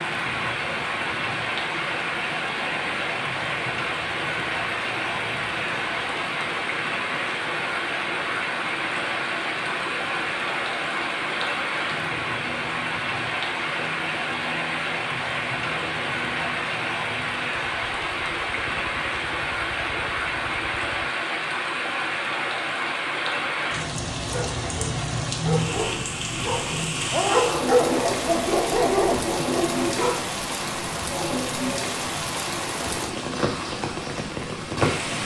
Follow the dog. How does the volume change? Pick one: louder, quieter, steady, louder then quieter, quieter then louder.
louder.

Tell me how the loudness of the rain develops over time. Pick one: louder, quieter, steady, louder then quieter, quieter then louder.
steady.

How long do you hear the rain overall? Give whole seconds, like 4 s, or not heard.
35 s.